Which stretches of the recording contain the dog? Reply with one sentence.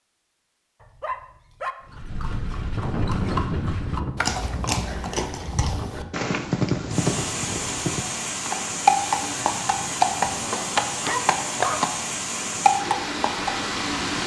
You can hear the dog from 0.8 to 1.8 s and from 11.0 to 11.9 s.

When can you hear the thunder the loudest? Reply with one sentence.
The loudest moment of the thunder is at 3 seconds.